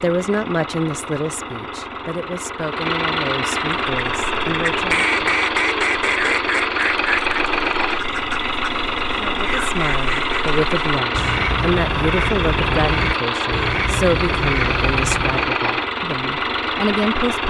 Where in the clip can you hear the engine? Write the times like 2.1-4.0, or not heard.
0.0-17.4.